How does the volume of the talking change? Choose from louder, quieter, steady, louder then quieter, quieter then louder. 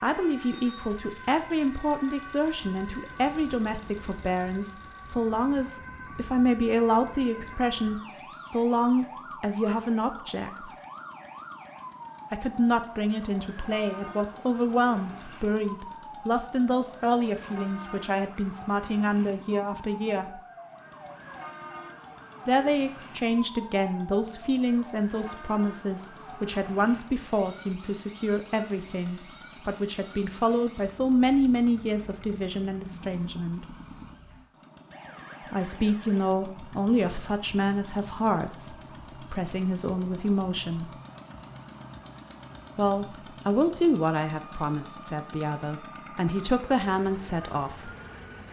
steady.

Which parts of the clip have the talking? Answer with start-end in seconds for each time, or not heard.
0.0-10.7, 12.3-20.4, 22.4-33.6, 35.5-40.9, 42.8-47.9.